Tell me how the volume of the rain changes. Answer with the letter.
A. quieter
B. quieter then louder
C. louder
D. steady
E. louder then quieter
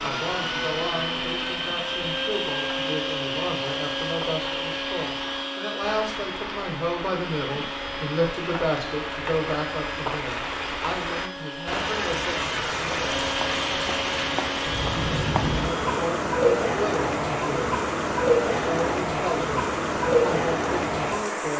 C.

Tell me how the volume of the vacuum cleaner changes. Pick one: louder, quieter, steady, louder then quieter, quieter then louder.
quieter then louder.